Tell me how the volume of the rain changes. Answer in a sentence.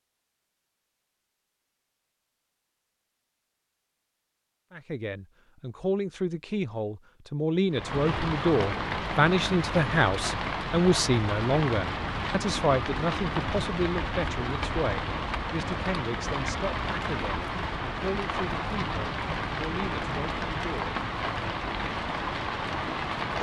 The loudness of the rain stays about the same.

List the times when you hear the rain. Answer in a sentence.
You can hear the rain from 7.7 to 23.3 s.